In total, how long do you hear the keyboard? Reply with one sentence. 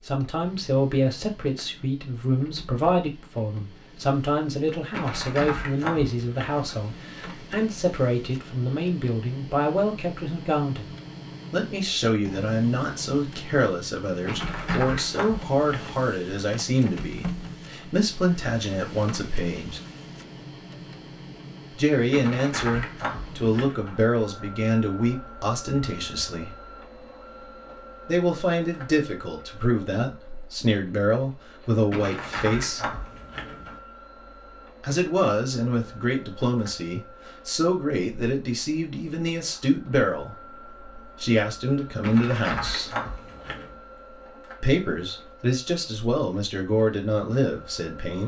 You can hear the keyboard for 9 seconds altogether.